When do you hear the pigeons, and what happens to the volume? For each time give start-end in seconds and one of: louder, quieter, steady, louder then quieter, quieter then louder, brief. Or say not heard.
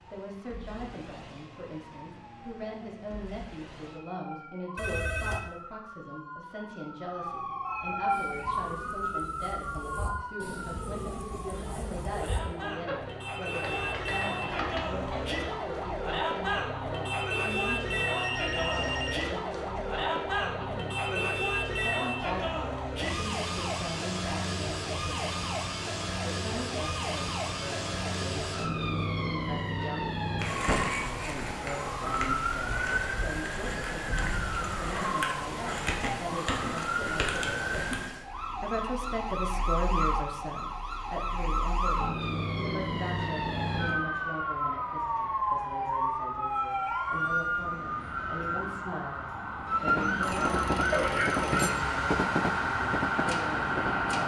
8.1-15.2 louder.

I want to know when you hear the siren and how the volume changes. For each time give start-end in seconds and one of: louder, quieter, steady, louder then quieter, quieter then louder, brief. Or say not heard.
0.0-54.2 louder.